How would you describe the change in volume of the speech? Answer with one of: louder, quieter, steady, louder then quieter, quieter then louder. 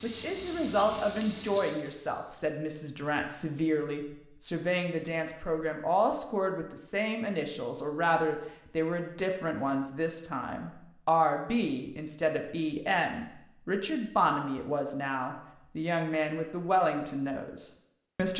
steady.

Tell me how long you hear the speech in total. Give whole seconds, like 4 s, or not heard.
18 s.